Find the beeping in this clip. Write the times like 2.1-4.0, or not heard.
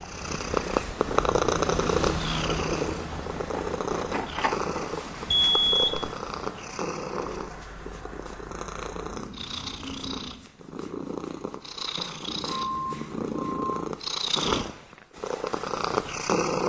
5.2-6.1, 12.2-13.9.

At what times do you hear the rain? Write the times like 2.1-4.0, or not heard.
0.0-10.5.